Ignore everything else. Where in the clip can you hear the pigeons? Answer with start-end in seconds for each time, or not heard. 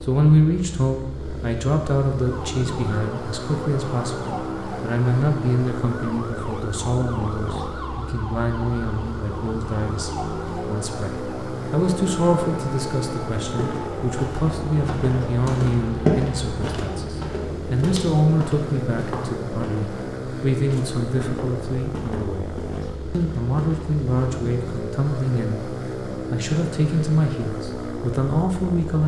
not heard.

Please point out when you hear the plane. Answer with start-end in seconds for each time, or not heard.
0.0-29.0.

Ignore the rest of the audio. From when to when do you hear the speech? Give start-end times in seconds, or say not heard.
0.0-22.5, 23.1-25.6, 26.3-29.0.